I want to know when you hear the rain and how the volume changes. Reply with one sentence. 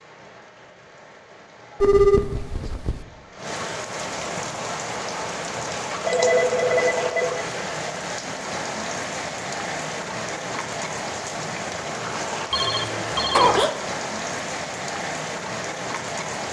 The rain can be heard from 0.0 to 16.4 s, getting louder.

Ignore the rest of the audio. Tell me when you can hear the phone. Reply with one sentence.
You can hear the phone from 1.8 to 3.0 s, from 6.0 to 7.5 s and from 12.5 to 13.7 s.